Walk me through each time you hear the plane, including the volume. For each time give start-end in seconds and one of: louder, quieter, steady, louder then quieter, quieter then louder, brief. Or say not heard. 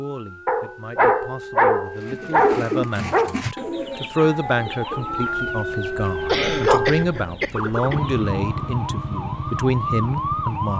not heard.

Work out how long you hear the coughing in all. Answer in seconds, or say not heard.
2 s.